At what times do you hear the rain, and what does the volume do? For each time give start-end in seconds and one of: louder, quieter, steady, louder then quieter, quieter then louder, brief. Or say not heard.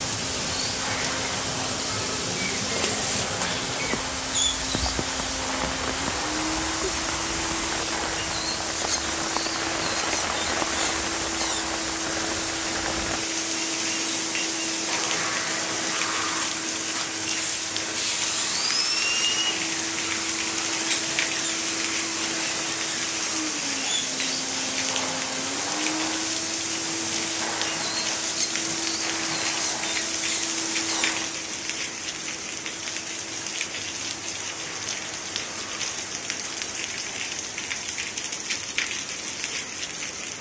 0.0-40.3 steady.